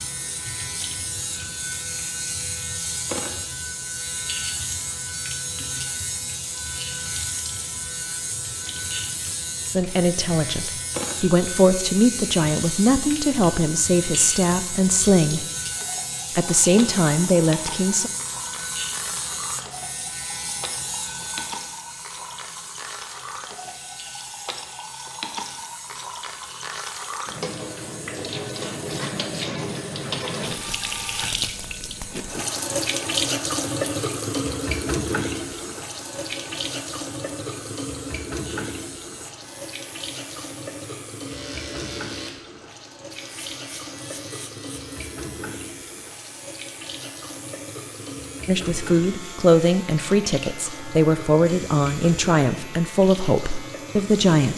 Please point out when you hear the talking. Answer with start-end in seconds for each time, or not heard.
9.8-15.4, 16.4-18.1, 48.5-54.5.